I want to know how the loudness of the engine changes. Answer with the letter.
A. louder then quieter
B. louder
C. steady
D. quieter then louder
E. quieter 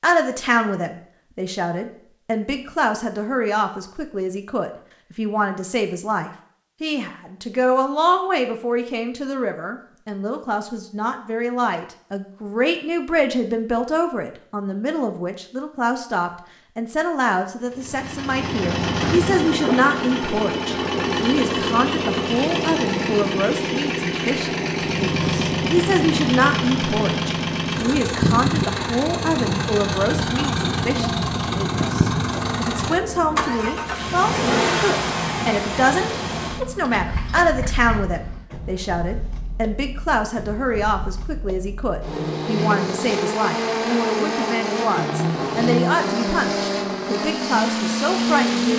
D.